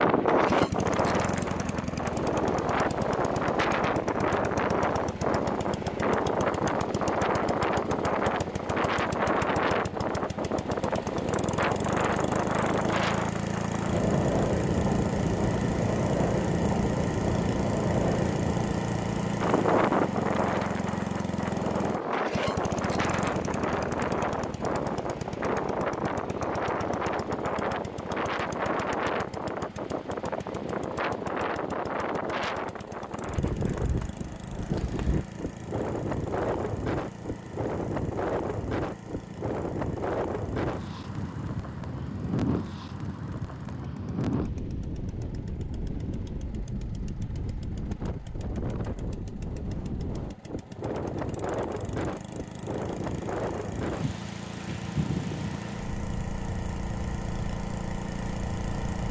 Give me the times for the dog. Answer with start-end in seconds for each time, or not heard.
not heard.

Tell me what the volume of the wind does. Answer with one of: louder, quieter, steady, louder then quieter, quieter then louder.
quieter.